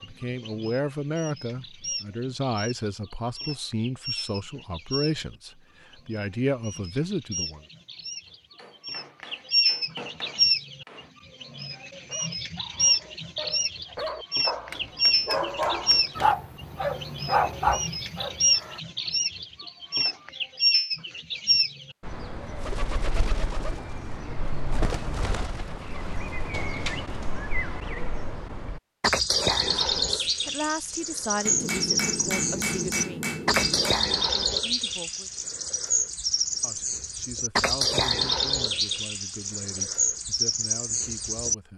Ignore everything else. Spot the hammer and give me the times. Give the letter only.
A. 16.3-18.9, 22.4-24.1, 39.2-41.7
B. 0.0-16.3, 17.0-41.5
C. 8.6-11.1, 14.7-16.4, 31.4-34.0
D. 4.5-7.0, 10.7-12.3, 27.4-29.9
C.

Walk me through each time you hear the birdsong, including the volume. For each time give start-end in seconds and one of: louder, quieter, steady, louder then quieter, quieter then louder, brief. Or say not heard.
0.0-16.3 louder
17.0-41.5 quieter then louder.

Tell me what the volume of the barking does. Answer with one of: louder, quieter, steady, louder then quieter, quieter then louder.
louder.